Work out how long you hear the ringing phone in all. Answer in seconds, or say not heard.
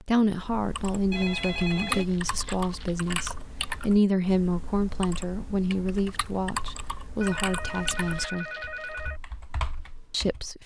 3 s.